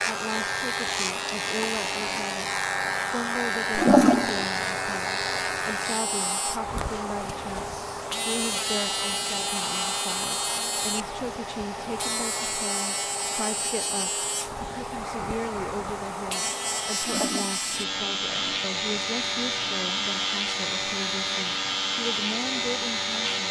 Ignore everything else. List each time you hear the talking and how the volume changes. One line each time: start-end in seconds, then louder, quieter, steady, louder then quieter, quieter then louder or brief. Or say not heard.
0.1-23.4 steady.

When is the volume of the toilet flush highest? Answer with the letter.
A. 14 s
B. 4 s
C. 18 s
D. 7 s
B.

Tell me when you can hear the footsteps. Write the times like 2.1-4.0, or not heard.
not heard.